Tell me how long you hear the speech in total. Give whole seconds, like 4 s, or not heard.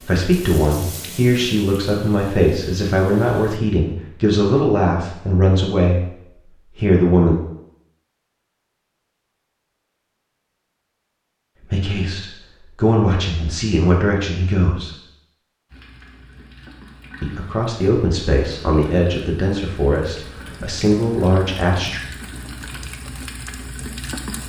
15 s.